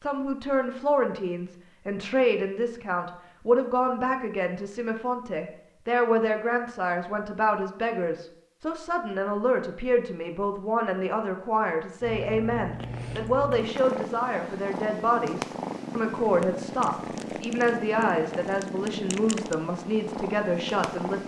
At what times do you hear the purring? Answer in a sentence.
You can hear the purring from 12.0 to 21.2 s.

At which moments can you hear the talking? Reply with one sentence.
The talking can be heard from 0.0 to 21.2 s.